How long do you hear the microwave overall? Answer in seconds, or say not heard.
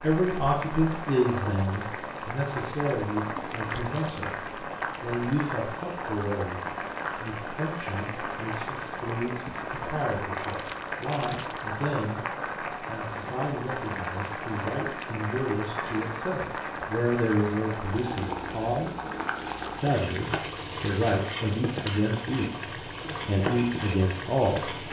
not heard.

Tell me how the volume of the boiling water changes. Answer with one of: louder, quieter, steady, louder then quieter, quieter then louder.
steady.